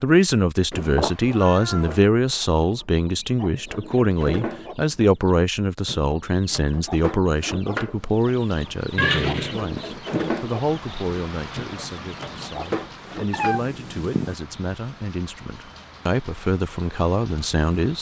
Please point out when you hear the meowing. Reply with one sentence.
The meowing can be heard from 0.7 to 2.0 s, from 8.9 to 9.6 s and from 13.3 to 14.3 s.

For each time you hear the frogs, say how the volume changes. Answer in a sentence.
The frogs can't be heard in this clip.